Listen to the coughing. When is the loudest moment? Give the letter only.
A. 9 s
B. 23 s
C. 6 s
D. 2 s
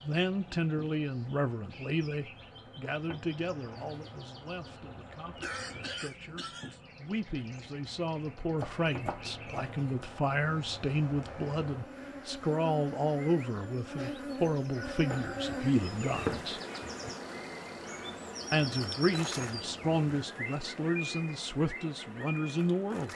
C.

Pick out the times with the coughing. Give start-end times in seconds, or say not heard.
5.4-6.8.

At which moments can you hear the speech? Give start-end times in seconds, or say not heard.
0.0-16.6, 18.5-23.1.